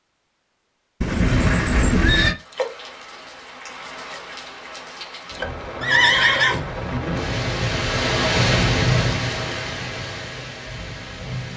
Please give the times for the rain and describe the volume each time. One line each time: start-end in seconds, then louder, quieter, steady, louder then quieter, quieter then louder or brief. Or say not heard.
2.3-11.5 louder then quieter.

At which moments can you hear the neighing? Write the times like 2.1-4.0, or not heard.
1.0-2.4, 5.8-6.7.